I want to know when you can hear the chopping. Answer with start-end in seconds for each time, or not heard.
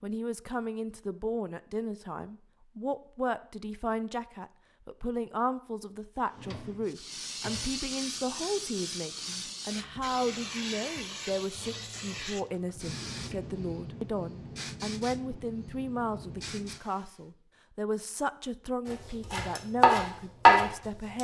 18.9-21.1.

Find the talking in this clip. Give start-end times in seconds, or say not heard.
0.0-21.1.